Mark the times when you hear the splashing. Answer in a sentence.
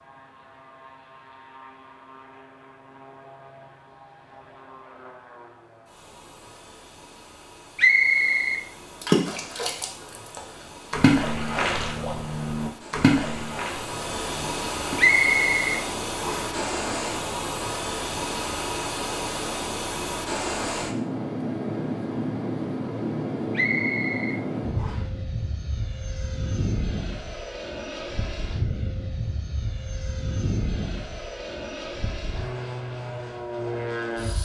You can hear the splashing from 9.0 to 15.2 s.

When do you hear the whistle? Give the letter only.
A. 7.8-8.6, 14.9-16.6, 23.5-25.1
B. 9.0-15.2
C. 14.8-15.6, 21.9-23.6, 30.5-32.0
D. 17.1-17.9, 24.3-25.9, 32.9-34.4
A.